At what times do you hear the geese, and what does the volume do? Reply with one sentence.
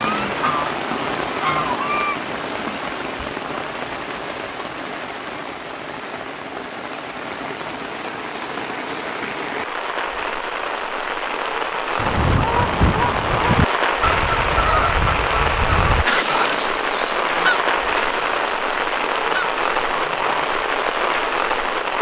The geese can be heard briefly from 0.0 to 2.2 s; and from 11.9 to 20.5 s, getting quieter.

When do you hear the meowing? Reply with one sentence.
The meowing can't be heard in this clip.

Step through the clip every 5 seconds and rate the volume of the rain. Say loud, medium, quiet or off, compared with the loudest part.
medium, medium, loud, loud, loud.